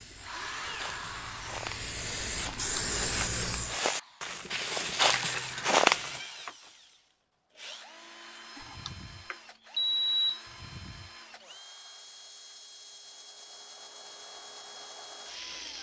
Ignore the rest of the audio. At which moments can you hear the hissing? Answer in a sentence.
You can hear the hissing from 0.0 to 3.8 s.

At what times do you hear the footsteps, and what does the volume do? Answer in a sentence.
The footsteps can be heard from 0.7 to 6.2 s, getting louder.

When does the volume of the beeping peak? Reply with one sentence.
The loudest moment of the beeping is at 10 seconds.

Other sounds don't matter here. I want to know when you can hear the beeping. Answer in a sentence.
The beeping can be heard from 2.5 to 3.2 s and from 8.6 to 10.4 s.